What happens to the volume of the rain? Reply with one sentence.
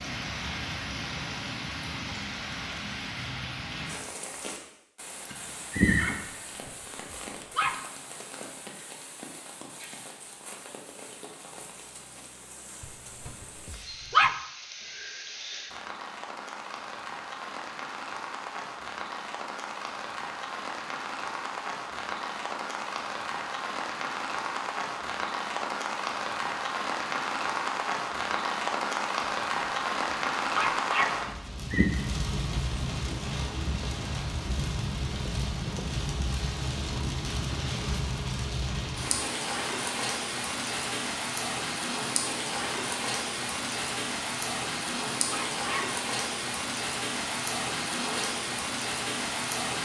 The loudness of the rain goes up.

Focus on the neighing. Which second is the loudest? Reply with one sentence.
The loudest moment of the neighing is at 6 seconds.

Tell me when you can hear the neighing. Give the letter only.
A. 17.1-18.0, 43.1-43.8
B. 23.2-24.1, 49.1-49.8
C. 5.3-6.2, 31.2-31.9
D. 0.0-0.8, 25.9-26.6
C.